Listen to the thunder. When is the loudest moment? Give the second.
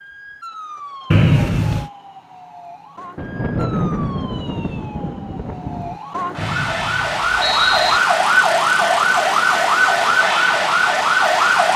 4 s.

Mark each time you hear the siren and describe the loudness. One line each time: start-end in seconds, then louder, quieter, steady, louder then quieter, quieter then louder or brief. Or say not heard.
0.0-11.7 louder.